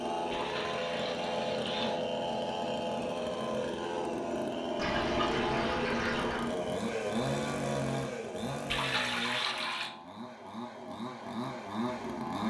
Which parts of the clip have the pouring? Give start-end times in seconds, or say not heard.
0.3-2.0, 4.8-6.5, 8.7-9.9.